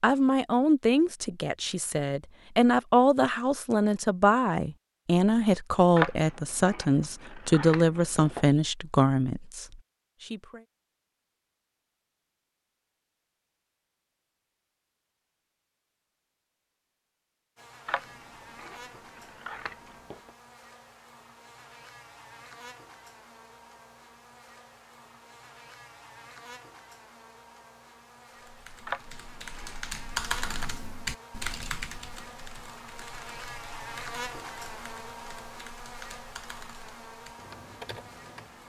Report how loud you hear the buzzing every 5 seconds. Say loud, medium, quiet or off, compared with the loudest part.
off, off, off, medium, medium, medium, loud, loud.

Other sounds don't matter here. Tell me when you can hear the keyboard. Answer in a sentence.
You can hear the keyboard from 28.4 to 38.6 s.